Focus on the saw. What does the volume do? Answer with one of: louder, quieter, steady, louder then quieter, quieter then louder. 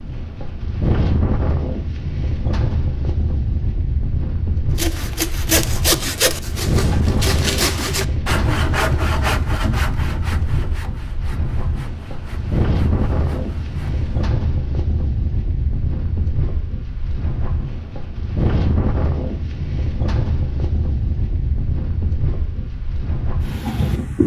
quieter.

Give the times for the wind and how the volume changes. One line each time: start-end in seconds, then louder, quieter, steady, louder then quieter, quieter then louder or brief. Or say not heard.
0.0-24.2 steady.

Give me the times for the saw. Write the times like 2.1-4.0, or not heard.
4.8-14.2.